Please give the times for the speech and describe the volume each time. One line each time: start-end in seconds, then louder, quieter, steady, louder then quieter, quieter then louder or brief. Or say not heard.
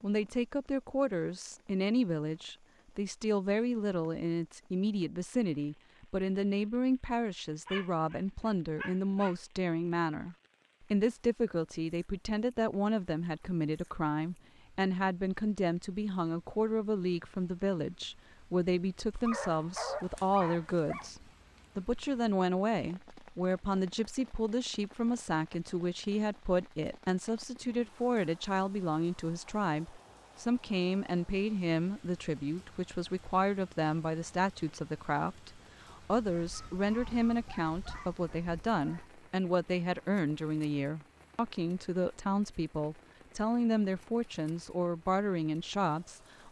0.0-46.4 steady.